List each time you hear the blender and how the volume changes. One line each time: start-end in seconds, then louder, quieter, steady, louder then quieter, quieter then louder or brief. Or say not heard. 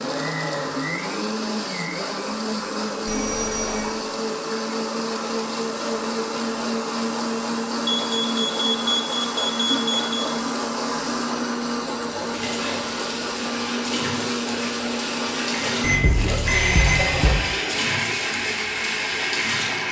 0.0-19.8 steady.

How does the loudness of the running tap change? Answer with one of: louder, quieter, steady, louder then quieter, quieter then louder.
louder.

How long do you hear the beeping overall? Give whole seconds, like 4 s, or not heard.
5 s.